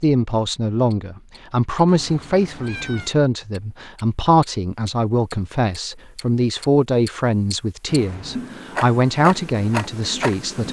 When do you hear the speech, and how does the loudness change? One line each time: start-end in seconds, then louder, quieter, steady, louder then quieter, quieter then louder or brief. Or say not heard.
0.0-10.6 steady.